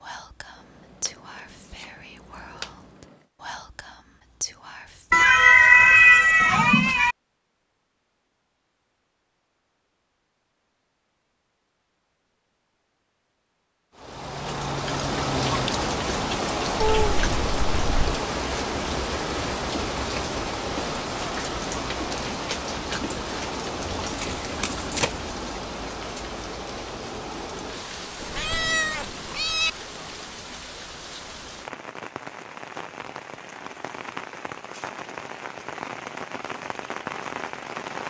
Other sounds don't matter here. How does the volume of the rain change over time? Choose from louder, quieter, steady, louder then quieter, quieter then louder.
quieter.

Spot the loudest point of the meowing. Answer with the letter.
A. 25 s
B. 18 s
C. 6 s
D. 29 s
C.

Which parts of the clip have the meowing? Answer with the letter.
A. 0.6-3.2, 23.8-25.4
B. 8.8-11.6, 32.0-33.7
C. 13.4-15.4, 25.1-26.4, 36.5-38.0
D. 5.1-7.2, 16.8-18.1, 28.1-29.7
D.